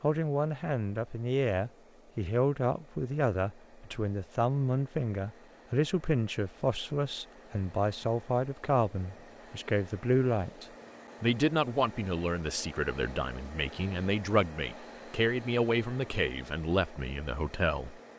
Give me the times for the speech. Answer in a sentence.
You can hear the speech from 0.0 to 18.0 s.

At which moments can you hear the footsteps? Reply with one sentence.
The footsteps can't be heard in this clip.